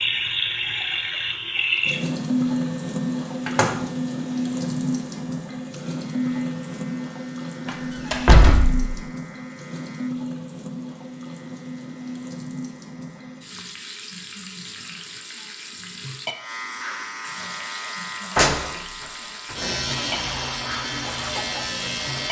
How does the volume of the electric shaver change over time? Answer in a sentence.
The volume of the electric shaver goes up.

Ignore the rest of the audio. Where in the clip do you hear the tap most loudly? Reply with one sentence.
The loudest moment of the tap is at 2 seconds.